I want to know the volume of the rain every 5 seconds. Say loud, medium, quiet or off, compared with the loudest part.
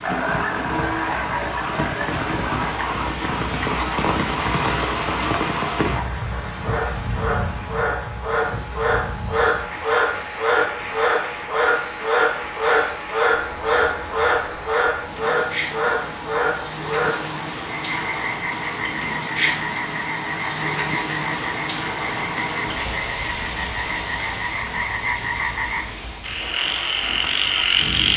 loud, loud, medium, loud, loud, medium.